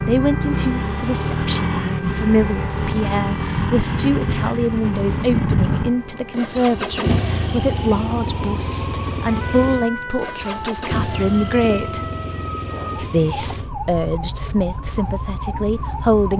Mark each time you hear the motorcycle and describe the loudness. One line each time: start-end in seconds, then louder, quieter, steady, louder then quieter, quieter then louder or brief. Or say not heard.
0.0-16.3 quieter.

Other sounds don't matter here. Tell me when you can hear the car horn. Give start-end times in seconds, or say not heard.
not heard.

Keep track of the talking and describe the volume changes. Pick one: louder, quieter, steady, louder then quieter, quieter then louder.
steady.